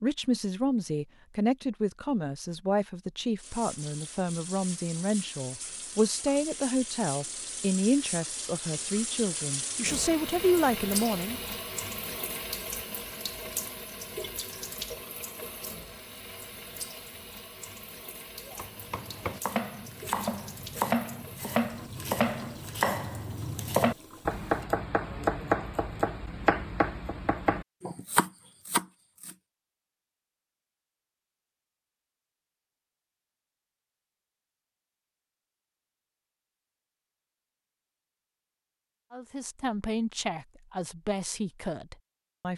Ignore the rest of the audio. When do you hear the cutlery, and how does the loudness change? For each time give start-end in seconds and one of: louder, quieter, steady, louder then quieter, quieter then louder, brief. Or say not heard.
not heard.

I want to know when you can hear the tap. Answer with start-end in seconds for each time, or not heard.
3.4-24.7.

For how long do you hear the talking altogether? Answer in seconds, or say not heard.
15 s.